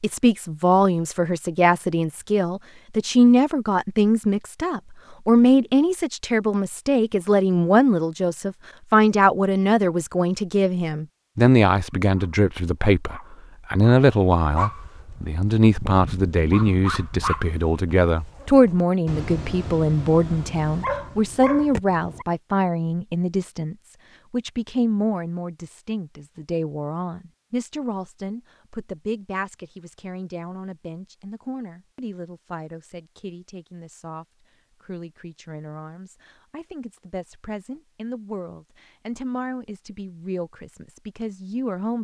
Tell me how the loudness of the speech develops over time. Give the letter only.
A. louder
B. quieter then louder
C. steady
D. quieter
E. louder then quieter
D.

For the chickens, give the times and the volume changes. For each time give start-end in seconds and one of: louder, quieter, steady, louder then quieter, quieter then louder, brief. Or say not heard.
not heard.